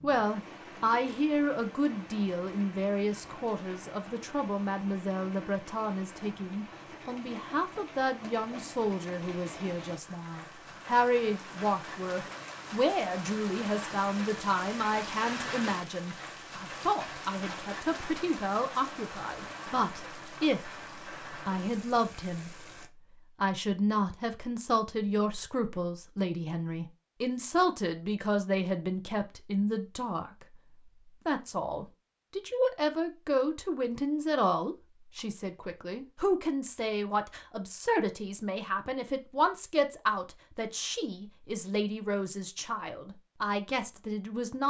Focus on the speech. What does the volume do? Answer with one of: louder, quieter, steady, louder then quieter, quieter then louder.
steady.